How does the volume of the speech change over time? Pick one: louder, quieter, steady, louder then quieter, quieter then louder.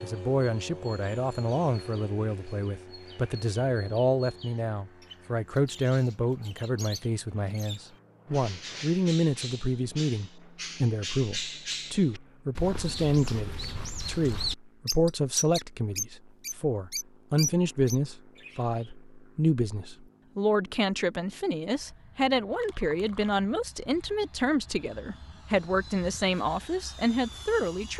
steady.